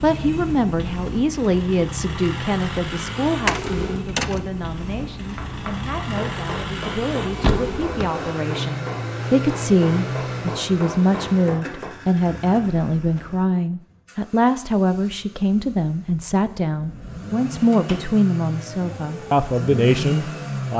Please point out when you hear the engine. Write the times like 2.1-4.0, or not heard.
0.0-20.7.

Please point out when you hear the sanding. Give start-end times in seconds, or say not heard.
not heard.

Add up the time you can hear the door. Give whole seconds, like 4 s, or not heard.
2 s.